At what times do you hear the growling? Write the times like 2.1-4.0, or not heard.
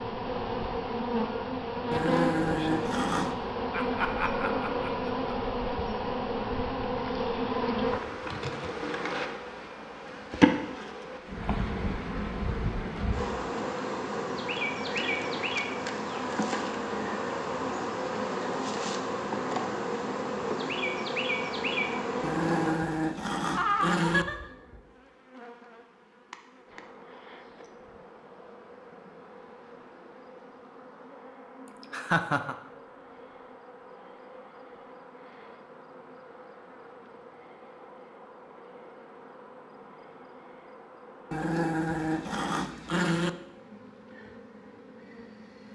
1.9-3.4, 22.2-24.2, 41.3-43.3.